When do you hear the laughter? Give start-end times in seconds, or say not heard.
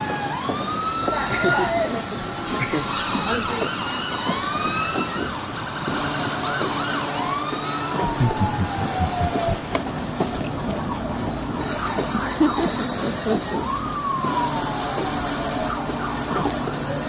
1.0-3.6, 8.0-9.4, 12.1-13.6.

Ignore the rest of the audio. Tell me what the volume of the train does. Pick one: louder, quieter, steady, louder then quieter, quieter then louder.
steady.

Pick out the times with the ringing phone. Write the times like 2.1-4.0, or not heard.
not heard.